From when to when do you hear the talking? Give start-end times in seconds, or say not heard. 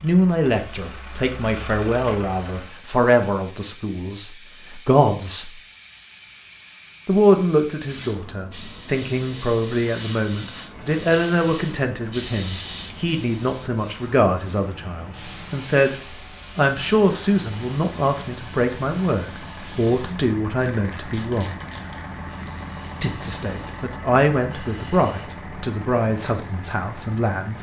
0.0-5.5, 7.0-15.9, 16.6-21.6, 23.0-27.5.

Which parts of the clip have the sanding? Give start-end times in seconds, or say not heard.
not heard.